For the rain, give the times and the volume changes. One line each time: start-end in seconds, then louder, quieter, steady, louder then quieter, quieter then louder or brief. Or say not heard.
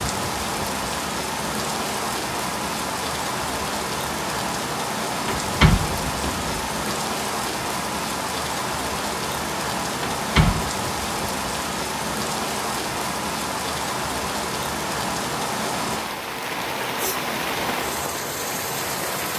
0.0-19.3 steady.